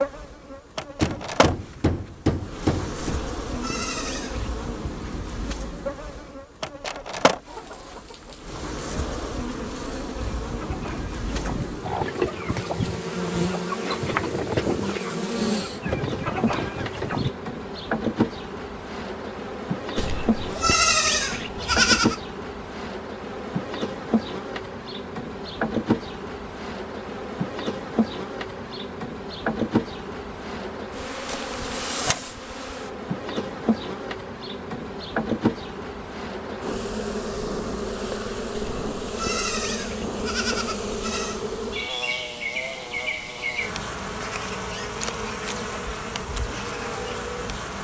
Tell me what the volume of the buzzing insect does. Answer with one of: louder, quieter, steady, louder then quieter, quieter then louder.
steady.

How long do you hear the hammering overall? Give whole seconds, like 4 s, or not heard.
2 s.